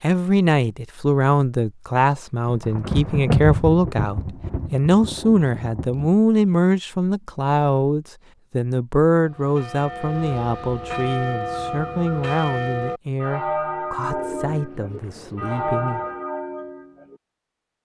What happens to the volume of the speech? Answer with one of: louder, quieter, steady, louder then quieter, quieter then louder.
quieter.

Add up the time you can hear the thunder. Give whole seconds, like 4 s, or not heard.
4 s.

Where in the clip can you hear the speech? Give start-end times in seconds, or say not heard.
0.0-16.0.